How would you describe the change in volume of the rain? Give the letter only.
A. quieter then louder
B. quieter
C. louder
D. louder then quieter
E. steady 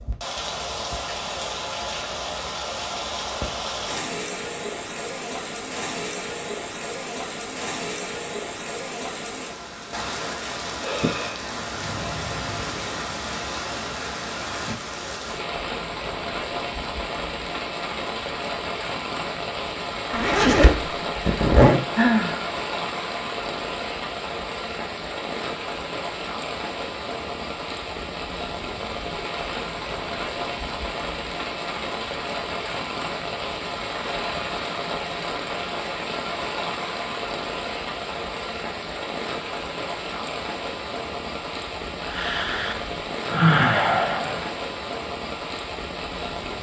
E.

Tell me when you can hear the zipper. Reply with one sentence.
The zipper can be heard from 20.1 to 21.8 s.